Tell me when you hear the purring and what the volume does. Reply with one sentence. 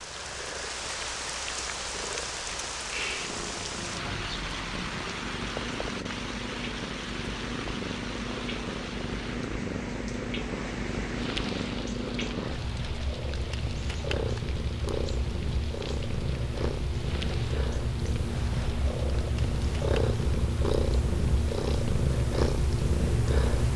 The purring can be heard from 0.0 to 23.7 s, getting louder.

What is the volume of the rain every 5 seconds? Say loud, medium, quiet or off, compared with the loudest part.
loud, loud, medium, medium, quiet.